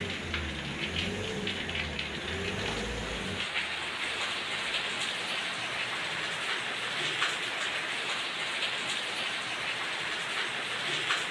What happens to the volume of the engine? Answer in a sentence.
The volume of the engine goes down.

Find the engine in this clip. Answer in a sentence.
You can hear the engine from 0.0 to 6.5 s.